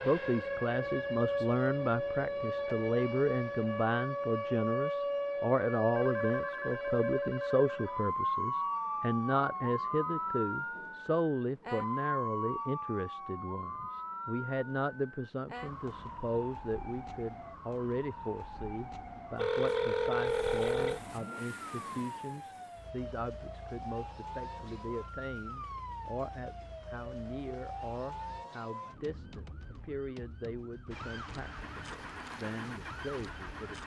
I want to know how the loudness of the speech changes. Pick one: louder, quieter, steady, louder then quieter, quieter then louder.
quieter.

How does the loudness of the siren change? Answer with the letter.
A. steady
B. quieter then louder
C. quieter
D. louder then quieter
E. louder
C.